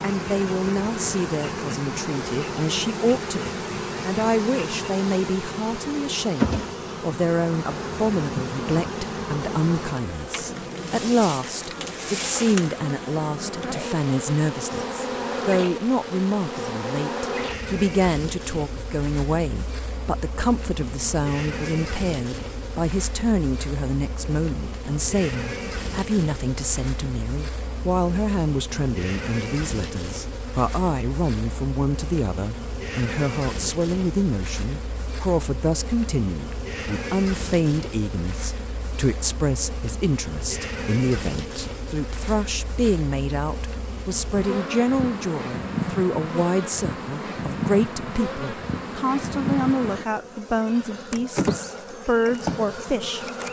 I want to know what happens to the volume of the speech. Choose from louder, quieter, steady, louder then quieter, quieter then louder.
steady.